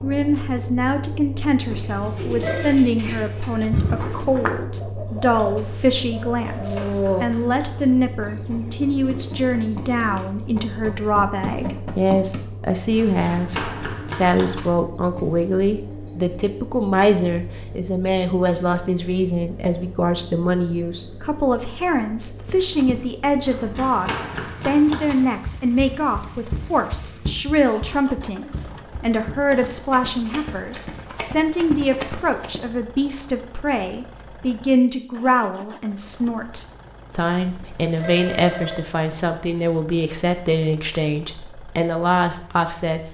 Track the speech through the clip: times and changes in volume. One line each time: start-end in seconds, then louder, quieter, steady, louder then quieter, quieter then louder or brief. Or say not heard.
0.0-43.0 steady.